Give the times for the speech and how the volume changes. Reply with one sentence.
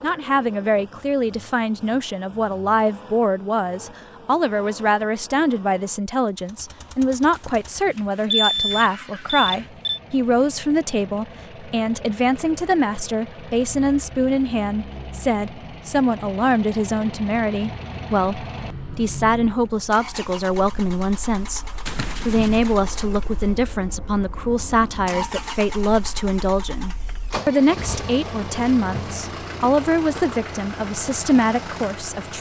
The speech can be heard from 0.0 to 32.3 s, at a steady volume.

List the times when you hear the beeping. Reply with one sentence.
You can hear the beeping from 7.3 to 10.0 s and from 21.9 to 22.7 s.